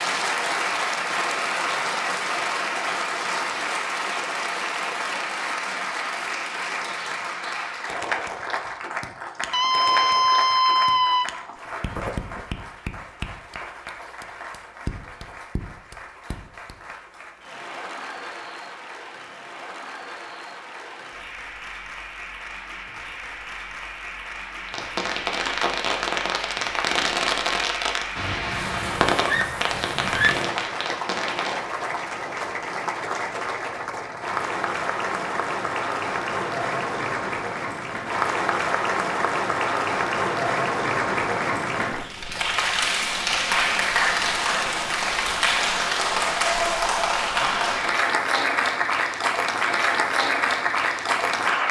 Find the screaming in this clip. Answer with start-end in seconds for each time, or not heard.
9.5-11.2, 29.2-30.4.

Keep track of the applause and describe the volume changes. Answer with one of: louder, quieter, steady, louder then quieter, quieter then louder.
quieter then louder.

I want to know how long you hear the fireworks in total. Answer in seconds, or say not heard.
7 s.